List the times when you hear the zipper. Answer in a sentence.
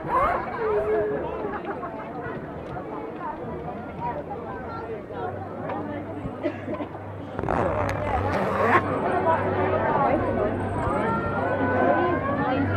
You can hear the zipper from 0.1 to 1.1 s and from 7.3 to 8.8 s.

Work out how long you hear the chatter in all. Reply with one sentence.
The chatter can be heard for 13 seconds in total.